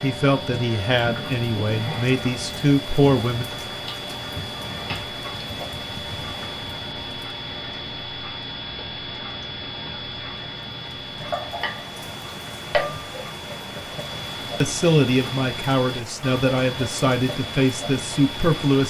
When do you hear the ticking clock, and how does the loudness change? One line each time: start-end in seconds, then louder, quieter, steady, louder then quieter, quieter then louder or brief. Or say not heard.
0.0-18.8 steady.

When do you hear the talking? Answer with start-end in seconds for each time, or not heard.
0.0-3.5, 14.6-18.8.